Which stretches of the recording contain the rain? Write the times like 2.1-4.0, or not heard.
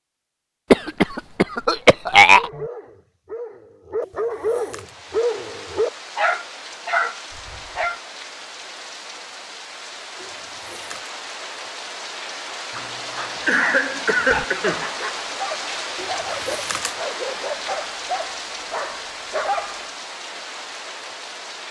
4.7-21.6.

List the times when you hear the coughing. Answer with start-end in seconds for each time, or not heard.
0.7-2.6, 12.8-14.9.